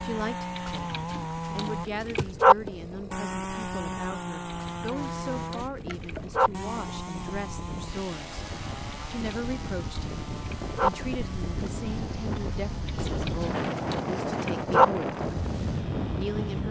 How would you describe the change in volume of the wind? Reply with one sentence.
The volume of the wind goes up.